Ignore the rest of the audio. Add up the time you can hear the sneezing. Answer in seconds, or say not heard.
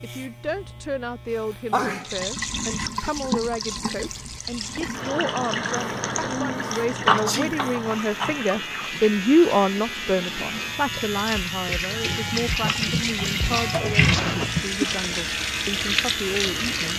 2 s.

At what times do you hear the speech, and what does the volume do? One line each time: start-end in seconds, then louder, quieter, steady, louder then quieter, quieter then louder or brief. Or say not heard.
0.0-16.9 louder then quieter.